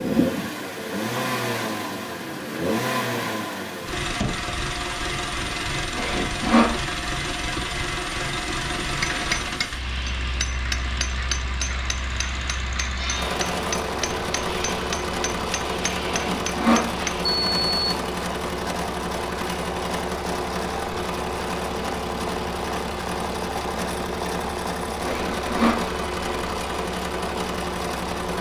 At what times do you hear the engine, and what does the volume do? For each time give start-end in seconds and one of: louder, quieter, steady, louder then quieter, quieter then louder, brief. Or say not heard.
0.0-28.3 steady.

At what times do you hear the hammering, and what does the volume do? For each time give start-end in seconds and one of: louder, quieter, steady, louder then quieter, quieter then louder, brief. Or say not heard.
9.0-17.2 steady.